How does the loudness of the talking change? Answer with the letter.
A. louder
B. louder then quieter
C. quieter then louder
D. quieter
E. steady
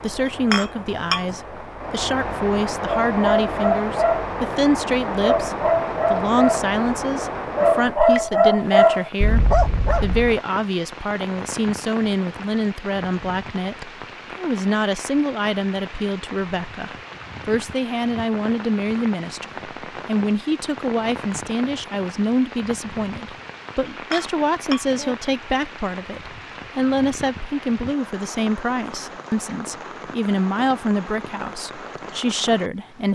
E.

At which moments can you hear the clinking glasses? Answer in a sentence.
The clinking glasses can be heard from 0.2 to 1.4 s and from 23.9 to 25.1 s.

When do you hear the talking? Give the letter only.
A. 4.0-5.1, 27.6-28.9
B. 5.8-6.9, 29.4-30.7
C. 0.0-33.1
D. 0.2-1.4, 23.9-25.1
C.